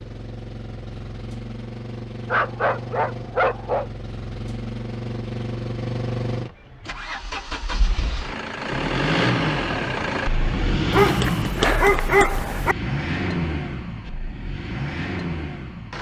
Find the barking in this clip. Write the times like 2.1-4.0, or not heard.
2.2-3.9, 10.9-12.8.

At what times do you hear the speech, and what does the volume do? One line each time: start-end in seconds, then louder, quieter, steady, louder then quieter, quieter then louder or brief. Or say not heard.
not heard.